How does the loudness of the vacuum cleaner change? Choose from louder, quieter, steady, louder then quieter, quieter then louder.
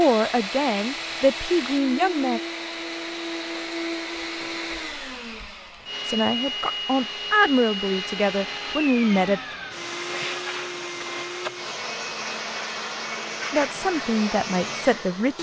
steady.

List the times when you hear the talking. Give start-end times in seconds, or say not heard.
0.0-2.4, 6.0-9.4, 13.5-15.3.